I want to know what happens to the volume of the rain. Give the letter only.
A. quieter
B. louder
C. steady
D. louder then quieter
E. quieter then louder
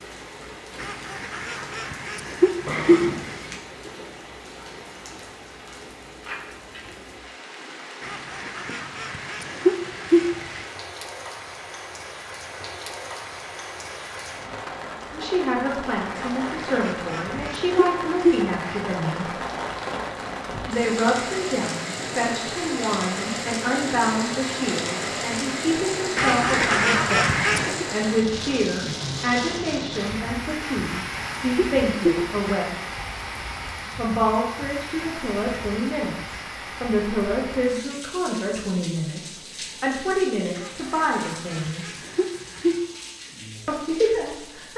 D.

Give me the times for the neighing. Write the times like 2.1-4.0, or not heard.
2.6-3.5.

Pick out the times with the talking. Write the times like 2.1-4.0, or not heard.
15.1-19.3, 20.6-32.8, 34.0-42.0, 43.6-44.7.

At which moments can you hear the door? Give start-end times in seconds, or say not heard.
not heard.